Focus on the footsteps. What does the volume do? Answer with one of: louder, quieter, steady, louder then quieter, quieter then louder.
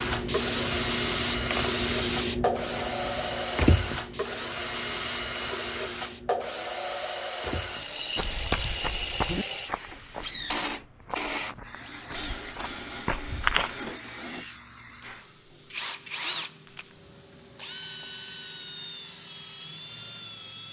quieter then louder.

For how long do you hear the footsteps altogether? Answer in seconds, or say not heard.
6 s.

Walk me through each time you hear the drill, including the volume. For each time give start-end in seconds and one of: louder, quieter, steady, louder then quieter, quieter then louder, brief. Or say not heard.
0.0-20.6 quieter.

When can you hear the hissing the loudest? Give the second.
2 s.